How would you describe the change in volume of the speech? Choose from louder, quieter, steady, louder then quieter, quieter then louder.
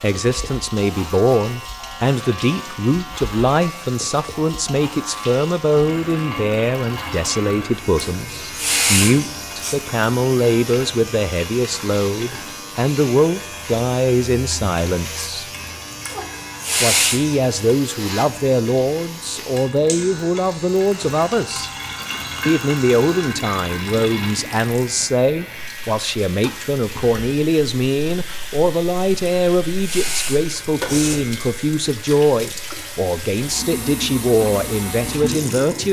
steady.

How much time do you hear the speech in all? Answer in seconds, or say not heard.
34 s.